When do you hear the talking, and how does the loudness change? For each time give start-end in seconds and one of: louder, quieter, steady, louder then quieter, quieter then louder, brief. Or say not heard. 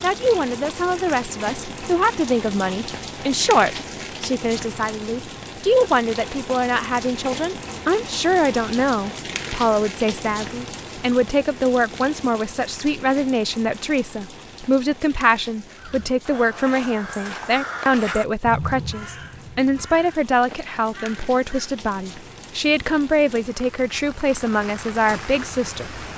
0.0-26.1 steady.